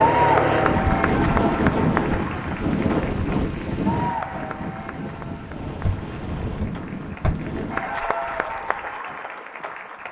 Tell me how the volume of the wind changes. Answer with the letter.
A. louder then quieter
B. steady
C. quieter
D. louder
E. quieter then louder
C.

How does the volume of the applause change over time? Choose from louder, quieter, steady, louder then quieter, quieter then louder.
quieter then louder.